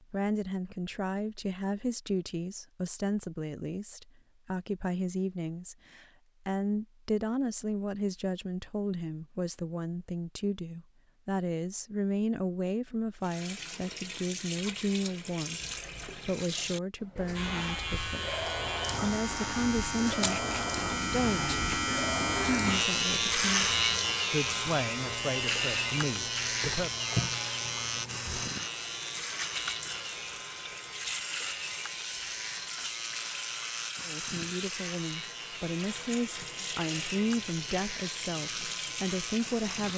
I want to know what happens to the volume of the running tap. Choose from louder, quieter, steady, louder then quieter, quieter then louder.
steady.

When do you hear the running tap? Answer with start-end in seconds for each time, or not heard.
13.2-39.9.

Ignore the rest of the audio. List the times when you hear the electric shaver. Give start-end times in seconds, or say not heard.
17.4-39.9.